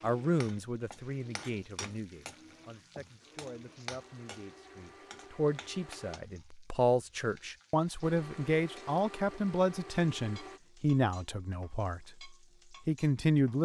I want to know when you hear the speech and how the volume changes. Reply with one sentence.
You can hear the speech from 0.0 to 13.6 s, getting louder.